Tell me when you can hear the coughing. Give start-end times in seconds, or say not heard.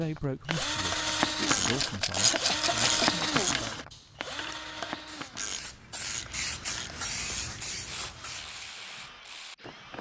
2.1-3.6.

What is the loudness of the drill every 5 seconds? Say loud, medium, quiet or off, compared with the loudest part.
loud, quiet.